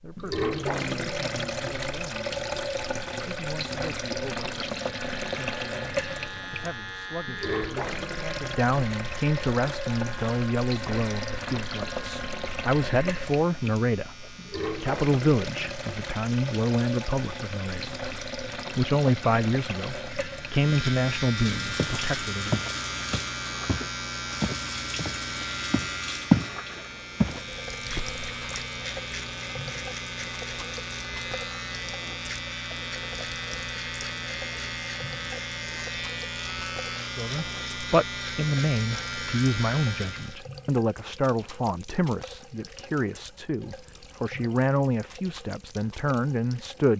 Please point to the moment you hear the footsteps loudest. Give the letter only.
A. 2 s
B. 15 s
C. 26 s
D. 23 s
C.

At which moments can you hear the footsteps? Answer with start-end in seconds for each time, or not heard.
21.8-26.5, 27.2-28.6.